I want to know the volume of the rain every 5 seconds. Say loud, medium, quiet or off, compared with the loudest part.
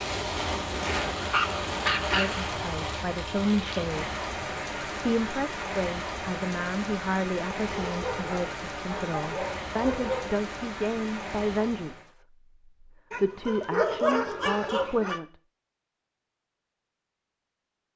loud, loud, medium, off.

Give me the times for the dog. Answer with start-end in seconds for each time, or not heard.
1.3-2.5, 7.7-10.4, 13.1-15.2.